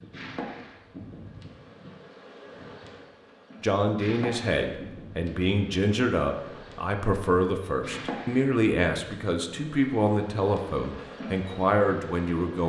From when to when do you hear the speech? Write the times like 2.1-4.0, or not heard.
3.6-12.6.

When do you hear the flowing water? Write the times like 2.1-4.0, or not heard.
not heard.